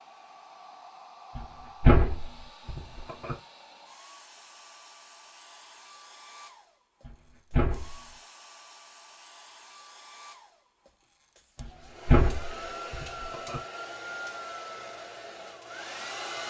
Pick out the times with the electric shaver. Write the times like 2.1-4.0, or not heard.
not heard.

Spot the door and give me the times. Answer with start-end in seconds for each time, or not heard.
1.4-3.4, 7.0-8.0, 11.6-13.6.